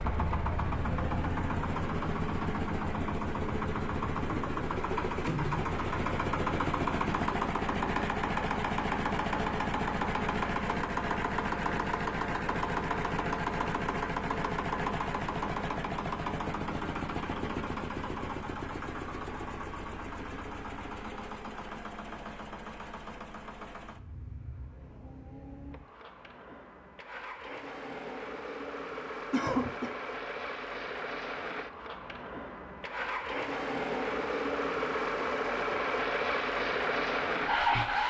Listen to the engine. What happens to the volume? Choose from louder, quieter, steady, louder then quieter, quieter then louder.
quieter then louder.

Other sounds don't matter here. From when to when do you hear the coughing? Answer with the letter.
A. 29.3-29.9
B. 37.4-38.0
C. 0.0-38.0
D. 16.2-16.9
A.